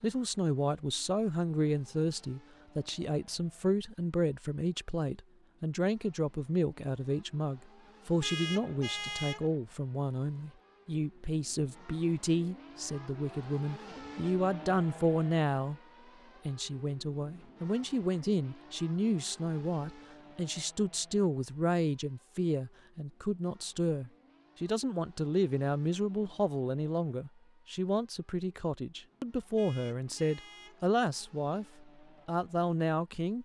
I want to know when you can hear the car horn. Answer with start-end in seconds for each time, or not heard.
8.2-9.5, 29.6-30.9.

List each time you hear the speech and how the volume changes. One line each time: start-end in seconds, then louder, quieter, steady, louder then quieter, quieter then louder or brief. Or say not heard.
0.0-15.8 steady
16.4-33.4 steady.